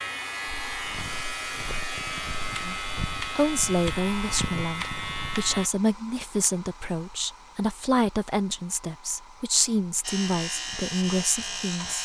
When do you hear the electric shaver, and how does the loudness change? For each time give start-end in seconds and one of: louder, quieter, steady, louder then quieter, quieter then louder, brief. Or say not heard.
0.0-5.7 steady
10.0-12.0 brief.